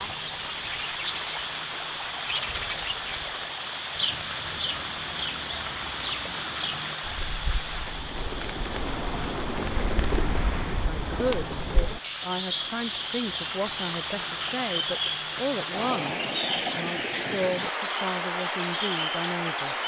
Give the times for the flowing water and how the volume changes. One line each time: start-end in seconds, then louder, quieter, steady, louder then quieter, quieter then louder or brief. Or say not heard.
0.0-19.8 quieter then louder.